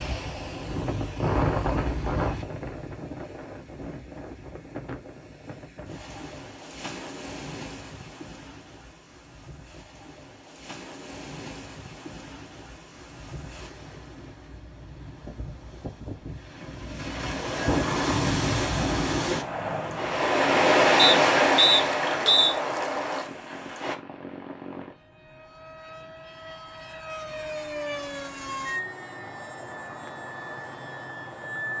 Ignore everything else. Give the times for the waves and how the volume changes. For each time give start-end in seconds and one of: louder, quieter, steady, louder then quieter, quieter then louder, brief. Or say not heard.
0.0-23.9 quieter then louder.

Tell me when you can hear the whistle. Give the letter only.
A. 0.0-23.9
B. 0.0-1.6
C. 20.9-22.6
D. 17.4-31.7
C.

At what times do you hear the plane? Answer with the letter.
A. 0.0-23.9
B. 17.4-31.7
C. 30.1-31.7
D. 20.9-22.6
B.